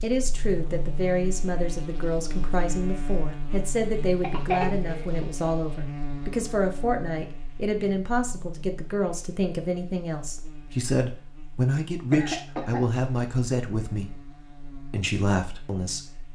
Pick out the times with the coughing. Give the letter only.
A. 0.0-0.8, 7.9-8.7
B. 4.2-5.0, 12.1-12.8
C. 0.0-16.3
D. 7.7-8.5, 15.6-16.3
B.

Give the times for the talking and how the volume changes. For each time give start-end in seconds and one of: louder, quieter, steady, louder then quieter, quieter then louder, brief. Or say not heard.
0.0-16.3 steady.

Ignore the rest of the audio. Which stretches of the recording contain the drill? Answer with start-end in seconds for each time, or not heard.
not heard.